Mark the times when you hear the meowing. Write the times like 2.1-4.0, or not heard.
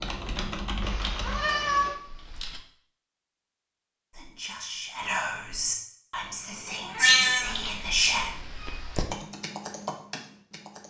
0.8-1.9, 7.0-7.5.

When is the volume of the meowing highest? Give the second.
7 s.